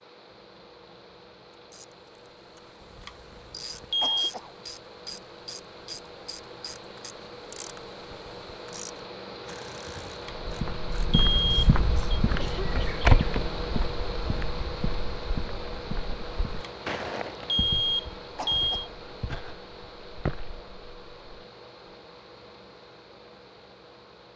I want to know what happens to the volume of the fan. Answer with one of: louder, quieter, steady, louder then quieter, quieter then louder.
louder then quieter.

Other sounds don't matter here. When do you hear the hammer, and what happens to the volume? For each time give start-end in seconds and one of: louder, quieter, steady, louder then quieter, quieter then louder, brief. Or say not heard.
not heard.